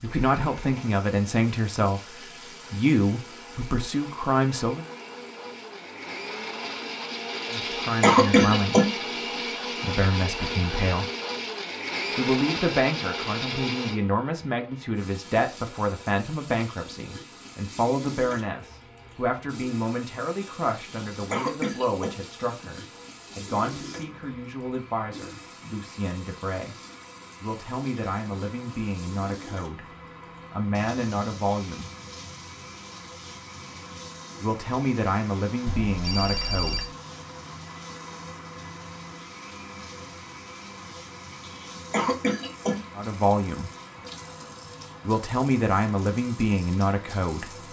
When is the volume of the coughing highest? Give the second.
8 s.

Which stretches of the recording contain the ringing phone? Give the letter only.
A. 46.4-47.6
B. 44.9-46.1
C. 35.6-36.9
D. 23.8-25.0
C.